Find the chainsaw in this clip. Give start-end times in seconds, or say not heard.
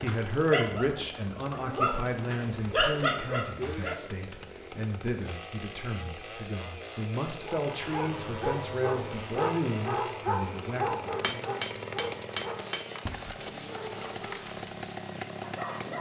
0.0-15.9.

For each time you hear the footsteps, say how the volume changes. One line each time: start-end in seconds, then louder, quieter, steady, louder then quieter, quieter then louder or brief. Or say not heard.
not heard.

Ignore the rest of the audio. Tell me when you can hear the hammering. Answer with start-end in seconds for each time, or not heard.
10.8-12.9.